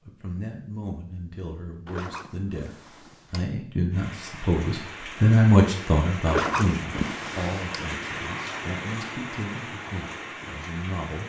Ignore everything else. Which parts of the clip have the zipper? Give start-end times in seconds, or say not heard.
1.9-3.5, 6.2-7.8.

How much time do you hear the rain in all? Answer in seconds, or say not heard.
7 s.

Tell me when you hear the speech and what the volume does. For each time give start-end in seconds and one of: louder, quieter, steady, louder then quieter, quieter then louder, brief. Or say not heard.
0.1-11.2 louder then quieter.